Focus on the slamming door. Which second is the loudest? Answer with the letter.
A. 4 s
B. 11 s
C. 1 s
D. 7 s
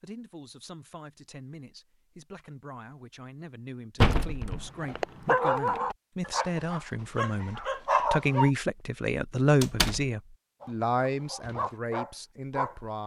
A.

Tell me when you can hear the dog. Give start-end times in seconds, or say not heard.
4.8-8.5, 10.6-12.8.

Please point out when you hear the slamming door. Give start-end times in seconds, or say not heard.
4.0-4.7, 9.6-10.1.